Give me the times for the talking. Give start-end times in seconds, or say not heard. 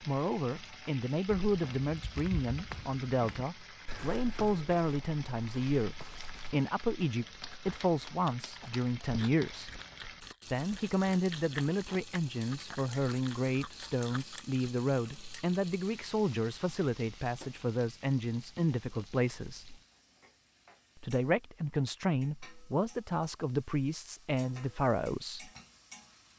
0.0-9.8, 10.4-19.8, 20.9-25.5.